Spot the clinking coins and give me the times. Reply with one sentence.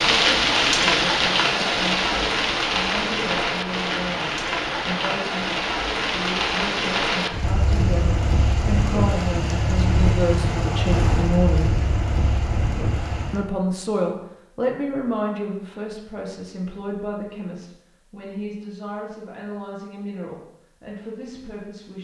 The clinking coins can't be heard in this clip.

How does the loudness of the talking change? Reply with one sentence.
The loudness of the talking goes up, then down.